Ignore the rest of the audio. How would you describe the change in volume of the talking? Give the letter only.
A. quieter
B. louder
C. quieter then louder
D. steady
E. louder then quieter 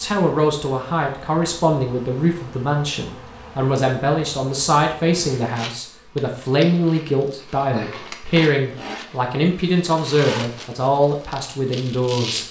D.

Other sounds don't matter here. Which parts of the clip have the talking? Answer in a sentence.
The talking can be heard from 0.0 to 12.4 s.